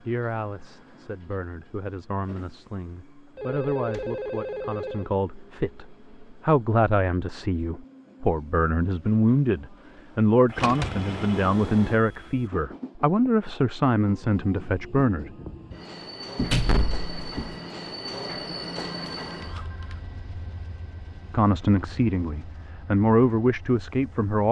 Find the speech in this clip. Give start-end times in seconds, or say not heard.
0.0-15.3, 21.3-24.4.